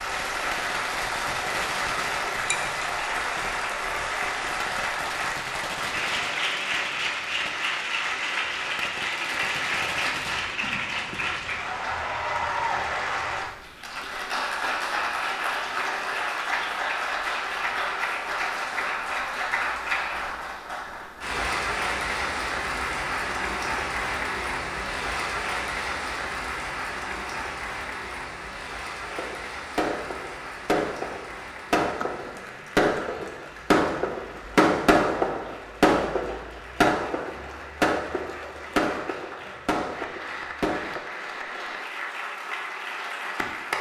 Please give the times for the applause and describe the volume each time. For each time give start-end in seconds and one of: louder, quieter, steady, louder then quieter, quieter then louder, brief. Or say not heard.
0.0-43.7 quieter.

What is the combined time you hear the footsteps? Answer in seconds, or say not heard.
not heard.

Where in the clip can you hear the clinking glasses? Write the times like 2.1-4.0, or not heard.
2.4-3.0.